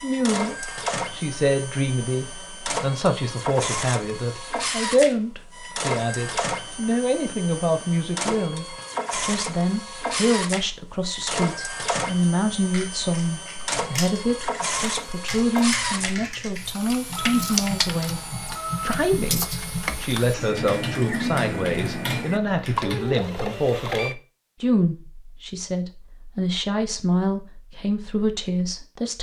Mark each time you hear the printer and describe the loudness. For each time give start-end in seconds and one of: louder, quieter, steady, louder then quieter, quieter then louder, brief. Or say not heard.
0.0-24.1 steady.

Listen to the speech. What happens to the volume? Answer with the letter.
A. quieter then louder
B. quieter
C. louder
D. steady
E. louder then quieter
D.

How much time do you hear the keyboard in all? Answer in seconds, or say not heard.
10 s.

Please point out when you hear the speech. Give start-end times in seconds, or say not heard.
0.0-18.2, 18.8-29.1.